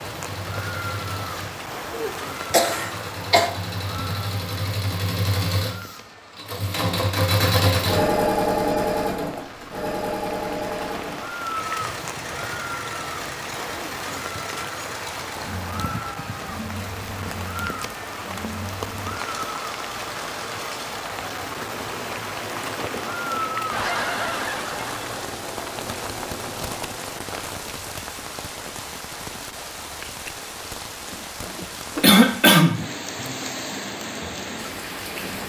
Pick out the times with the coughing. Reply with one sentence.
The coughing can be heard from 1.9 to 3.5 s and from 32.0 to 32.9 s.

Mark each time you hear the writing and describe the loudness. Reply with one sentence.
You can't hear the writing here.